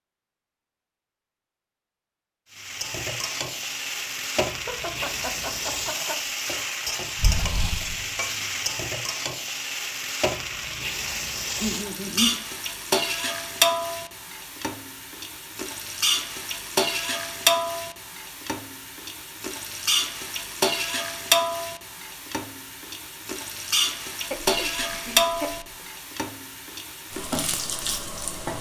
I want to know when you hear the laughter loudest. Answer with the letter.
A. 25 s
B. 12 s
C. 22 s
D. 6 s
B.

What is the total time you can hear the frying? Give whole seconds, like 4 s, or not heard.
26 s.